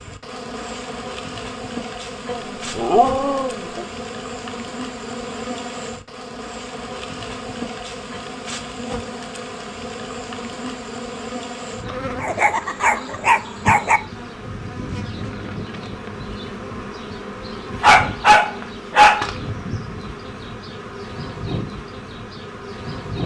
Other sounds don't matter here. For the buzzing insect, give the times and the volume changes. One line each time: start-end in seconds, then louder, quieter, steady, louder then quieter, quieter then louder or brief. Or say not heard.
0.0-23.2 steady.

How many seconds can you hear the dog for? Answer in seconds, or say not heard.
5 s.